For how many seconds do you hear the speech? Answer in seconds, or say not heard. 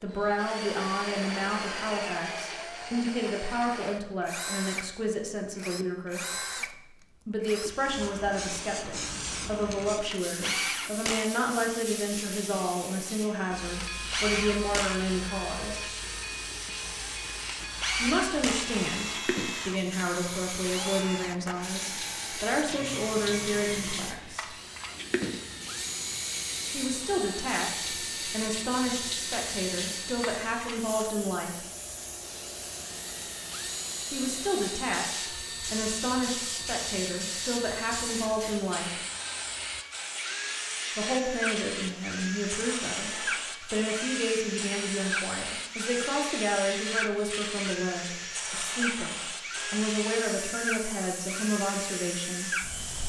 43 s.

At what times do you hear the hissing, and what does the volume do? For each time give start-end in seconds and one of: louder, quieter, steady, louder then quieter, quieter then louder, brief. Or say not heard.
7.8-53.0 steady.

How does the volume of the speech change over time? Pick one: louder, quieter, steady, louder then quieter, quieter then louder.
steady.